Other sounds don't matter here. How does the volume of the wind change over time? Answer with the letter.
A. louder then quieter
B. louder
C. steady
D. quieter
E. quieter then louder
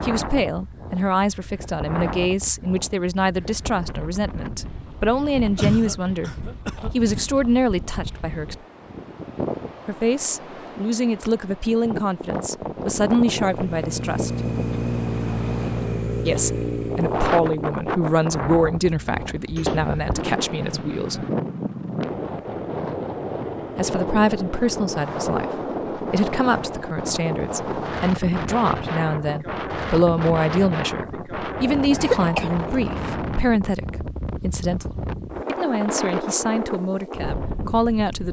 B.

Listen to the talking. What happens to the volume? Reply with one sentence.
The volume of the talking stays about the same.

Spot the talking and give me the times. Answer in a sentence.
The talking can be heard from 0.0 to 8.6 s, from 9.8 to 14.3 s, from 16.2 to 21.2 s and from 23.8 to 38.2 s.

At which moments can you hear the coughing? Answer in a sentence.
The coughing can be heard from 5.5 to 6.9 s and from 31.9 to 33.0 s.